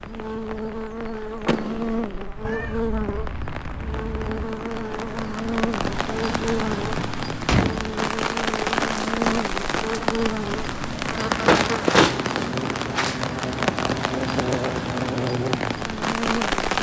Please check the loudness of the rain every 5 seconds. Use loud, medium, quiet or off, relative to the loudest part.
quiet, loud, loud, loud.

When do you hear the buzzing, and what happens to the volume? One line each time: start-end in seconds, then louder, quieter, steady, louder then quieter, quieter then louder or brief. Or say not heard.
0.0-16.6 steady.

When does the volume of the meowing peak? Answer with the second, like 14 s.
3 s.